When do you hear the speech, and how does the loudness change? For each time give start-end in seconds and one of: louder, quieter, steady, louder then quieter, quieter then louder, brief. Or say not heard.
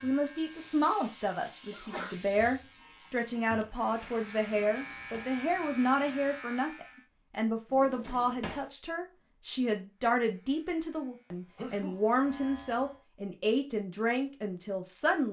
0.0-15.2 steady.